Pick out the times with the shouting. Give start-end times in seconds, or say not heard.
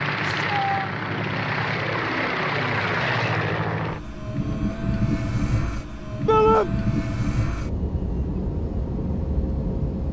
0.2-0.9, 6.2-6.7.